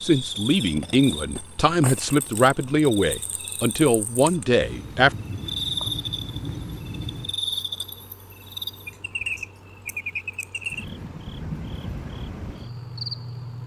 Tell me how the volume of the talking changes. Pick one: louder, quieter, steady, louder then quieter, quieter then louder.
steady.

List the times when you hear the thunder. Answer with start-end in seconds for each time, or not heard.
4.6-7.4.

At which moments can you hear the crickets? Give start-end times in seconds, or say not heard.
0.0-13.6.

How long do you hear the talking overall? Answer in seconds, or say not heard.
5 s.